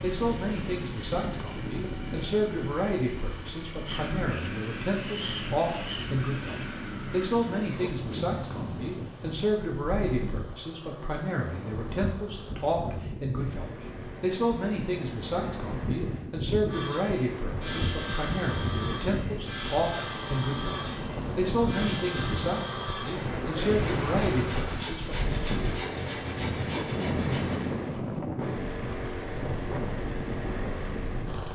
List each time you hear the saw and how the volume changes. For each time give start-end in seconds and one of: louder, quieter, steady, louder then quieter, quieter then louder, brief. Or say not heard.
16.6-27.7 steady.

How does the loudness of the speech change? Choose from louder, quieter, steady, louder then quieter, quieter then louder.
steady.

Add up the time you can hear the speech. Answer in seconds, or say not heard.
25 s.